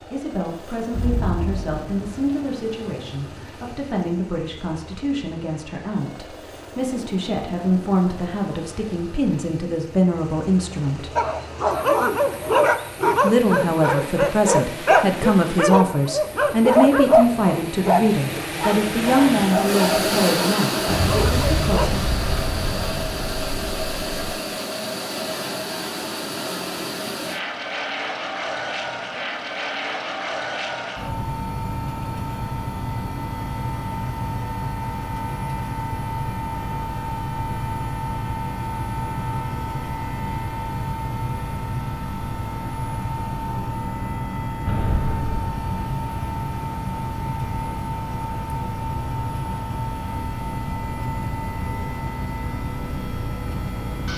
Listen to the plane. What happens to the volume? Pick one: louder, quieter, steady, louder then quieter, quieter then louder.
louder.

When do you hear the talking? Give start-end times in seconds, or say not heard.
0.0-11.1, 13.2-22.0.